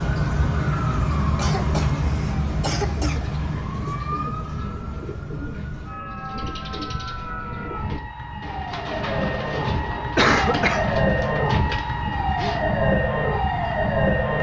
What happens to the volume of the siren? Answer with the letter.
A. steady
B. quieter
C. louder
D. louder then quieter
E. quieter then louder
E.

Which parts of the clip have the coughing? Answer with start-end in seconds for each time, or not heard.
1.4-3.2, 10.2-10.9.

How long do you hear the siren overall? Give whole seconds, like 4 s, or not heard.
14 s.